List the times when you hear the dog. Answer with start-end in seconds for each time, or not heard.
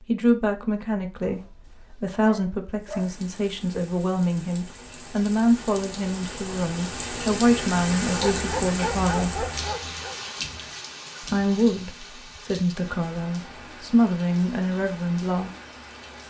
1.2-3.1, 8.2-10.2.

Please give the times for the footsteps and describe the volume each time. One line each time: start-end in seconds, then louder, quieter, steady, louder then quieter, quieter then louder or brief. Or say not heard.
not heard.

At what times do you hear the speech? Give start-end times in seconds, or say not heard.
0.0-9.5, 11.2-15.5.